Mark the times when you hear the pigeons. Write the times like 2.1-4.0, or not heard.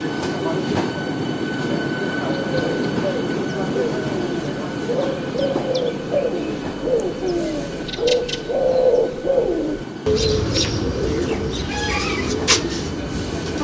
2.4-13.6.